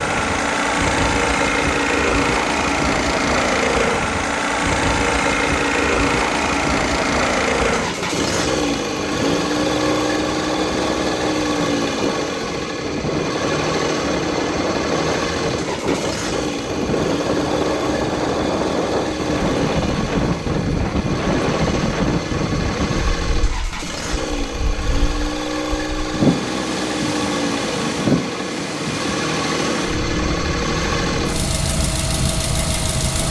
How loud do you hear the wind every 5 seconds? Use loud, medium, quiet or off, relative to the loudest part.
medium, medium, loud, loud, loud, loud, medium.